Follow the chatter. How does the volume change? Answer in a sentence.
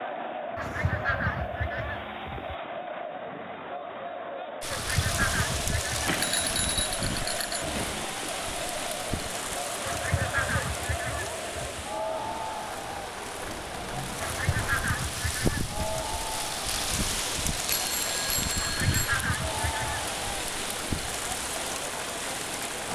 The loudness of the chatter stays about the same.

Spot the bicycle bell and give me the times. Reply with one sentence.
You can hear the bicycle bell from 6.0 to 8.1 s and from 17.6 to 18.9 s.